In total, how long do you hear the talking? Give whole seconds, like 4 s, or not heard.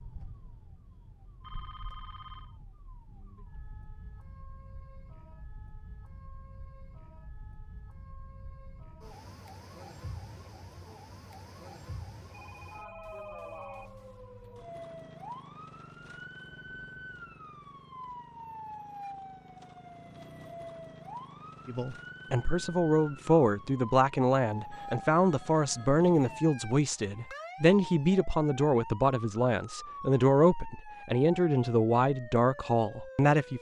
12 s.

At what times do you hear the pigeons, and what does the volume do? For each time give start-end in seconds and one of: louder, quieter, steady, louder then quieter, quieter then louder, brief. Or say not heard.
not heard.